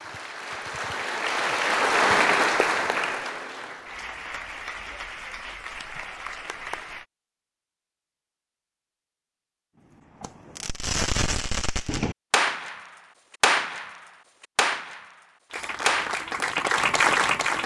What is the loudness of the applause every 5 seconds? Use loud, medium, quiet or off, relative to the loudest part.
loud, quiet, off, loud.